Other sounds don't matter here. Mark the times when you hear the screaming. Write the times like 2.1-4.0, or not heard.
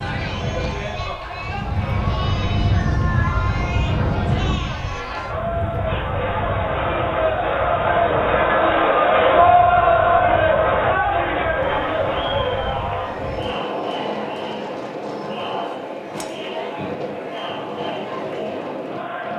not heard.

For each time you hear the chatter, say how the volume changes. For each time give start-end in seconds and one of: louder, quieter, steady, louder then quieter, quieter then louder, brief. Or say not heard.
0.0-19.3 louder then quieter.